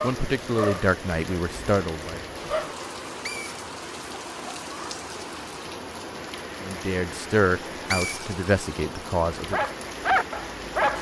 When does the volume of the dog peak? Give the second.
10 s.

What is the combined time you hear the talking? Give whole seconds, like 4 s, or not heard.
5 s.